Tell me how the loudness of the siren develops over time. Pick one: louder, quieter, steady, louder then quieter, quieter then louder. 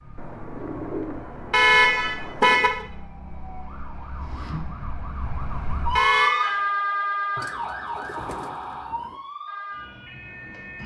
louder then quieter.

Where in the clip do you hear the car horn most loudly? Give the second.
2 s.